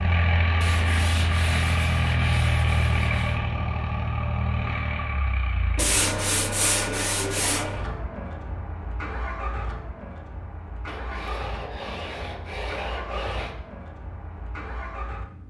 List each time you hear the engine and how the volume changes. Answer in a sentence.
The engine can be heard from 0.0 to 15.4 s, getting quieter.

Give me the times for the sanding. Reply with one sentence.
You can hear the sanding from 0.6 to 3.4 s, from 5.8 to 7.7 s and from 10.8 to 13.6 s.